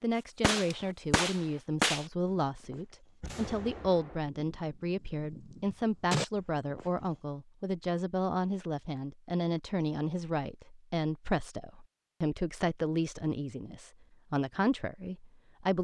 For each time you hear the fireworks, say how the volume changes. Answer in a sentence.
You can hear the fireworks briefly from 0.4 to 2.1 s; and from 2.7 to 6.8 s, getting quieter then louder.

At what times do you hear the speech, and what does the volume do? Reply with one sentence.
You can hear the speech from 0.0 to 15.7 s, at a steady volume.